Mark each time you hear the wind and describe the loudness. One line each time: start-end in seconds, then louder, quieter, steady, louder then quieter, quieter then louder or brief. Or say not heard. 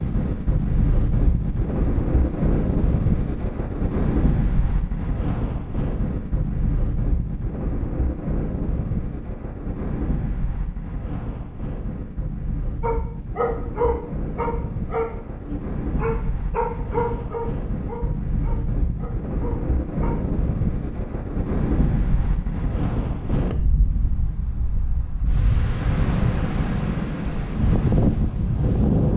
0.0-29.1 quieter then louder.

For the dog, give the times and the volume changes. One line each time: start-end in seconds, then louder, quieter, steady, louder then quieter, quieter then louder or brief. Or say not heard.
12.8-20.1 quieter.